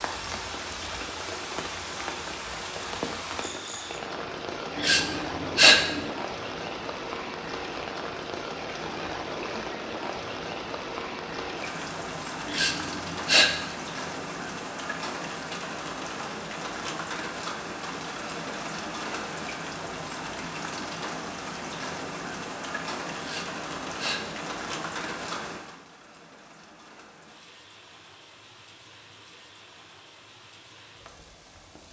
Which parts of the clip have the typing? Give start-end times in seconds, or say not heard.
not heard.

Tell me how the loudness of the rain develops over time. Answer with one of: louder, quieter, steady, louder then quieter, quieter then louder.
quieter.